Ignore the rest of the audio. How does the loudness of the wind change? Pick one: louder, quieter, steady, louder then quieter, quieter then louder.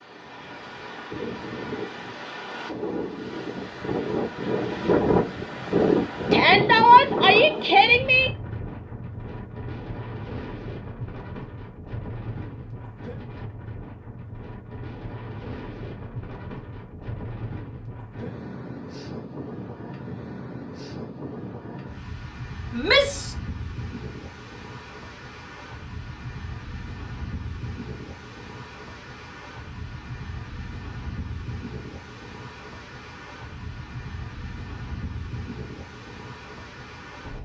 quieter.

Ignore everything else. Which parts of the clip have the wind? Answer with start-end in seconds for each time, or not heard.
0.0-37.4.